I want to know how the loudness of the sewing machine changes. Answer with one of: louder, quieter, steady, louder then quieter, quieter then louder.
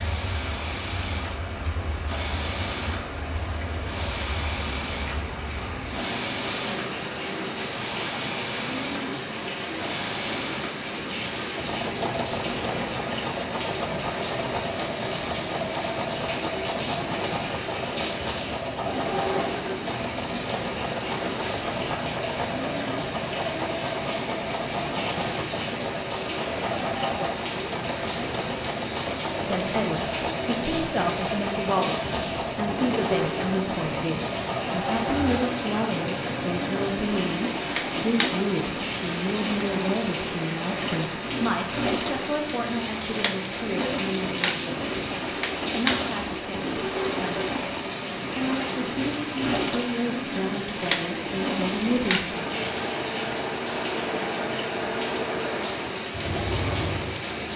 steady.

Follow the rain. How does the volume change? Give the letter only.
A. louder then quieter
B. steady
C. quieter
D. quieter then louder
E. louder
B.